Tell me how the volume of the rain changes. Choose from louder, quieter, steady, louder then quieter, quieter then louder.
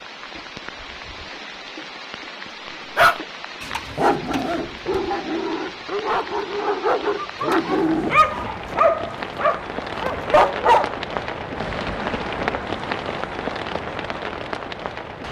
louder.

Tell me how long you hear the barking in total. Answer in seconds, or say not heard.
8 s.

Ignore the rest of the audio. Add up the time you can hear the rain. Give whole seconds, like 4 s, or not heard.
15 s.